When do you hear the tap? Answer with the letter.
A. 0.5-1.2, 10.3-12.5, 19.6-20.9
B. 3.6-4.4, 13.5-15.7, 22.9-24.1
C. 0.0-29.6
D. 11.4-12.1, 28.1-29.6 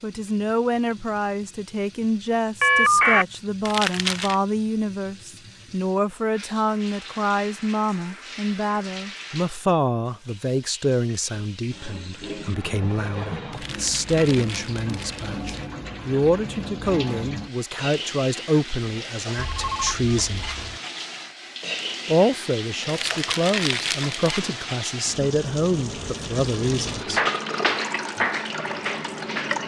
C.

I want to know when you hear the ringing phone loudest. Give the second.
3 s.